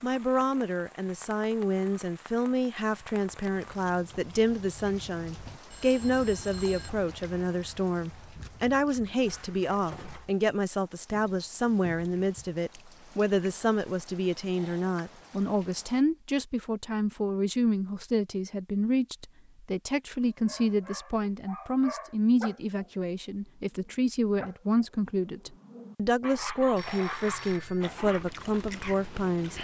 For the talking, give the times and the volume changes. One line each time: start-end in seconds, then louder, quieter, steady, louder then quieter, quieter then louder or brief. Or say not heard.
0.0-29.6 steady.